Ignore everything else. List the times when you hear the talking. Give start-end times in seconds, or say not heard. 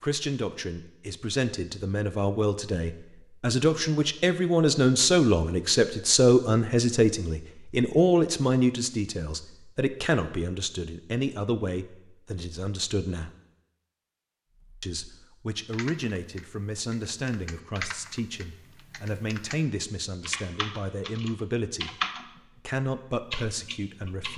0.0-13.3, 14.8-21.9, 22.6-24.3.